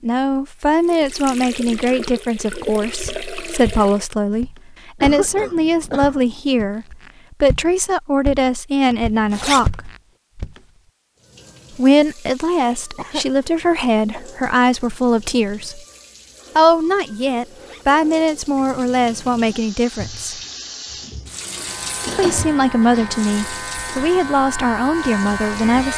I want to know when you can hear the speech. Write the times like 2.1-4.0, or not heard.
0.0-9.9, 11.8-15.8, 16.6-20.4, 22.1-25.9.